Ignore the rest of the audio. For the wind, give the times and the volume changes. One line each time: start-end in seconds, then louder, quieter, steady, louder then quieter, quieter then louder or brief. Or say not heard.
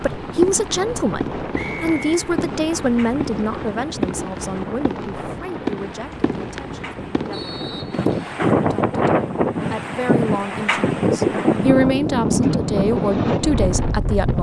0.0-14.3 louder.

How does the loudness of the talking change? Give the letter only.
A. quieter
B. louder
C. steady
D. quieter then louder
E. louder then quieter
D.